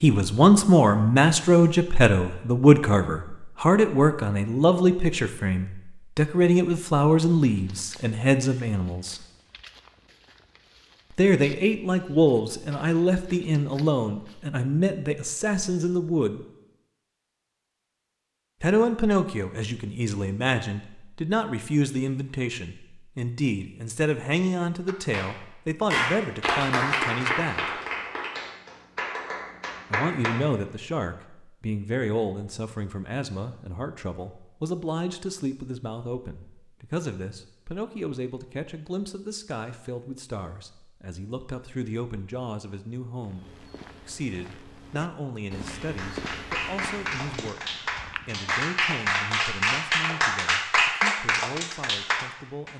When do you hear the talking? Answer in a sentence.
The talking can be heard from 0.0 to 9.2 s, from 11.1 to 16.4 s, from 18.6 to 27.8 s and from 29.9 to 52.7 s.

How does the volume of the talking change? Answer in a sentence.
The volume of the talking goes down.